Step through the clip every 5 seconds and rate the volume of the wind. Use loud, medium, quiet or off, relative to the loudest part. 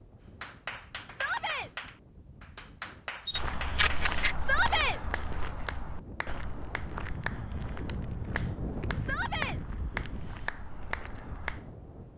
quiet, loud, medium.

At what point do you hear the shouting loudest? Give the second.
5 s.